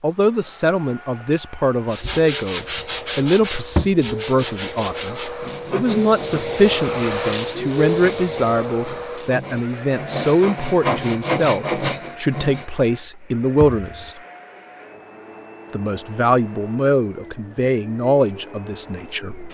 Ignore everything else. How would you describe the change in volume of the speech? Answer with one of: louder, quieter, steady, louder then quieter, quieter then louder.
steady.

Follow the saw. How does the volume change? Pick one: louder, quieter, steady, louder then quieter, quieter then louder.
quieter then louder.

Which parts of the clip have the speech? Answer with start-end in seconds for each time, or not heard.
0.0-14.2, 15.7-19.5.